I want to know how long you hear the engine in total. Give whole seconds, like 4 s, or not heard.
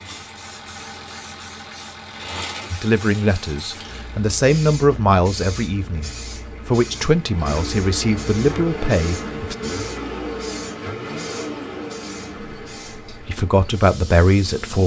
15 s.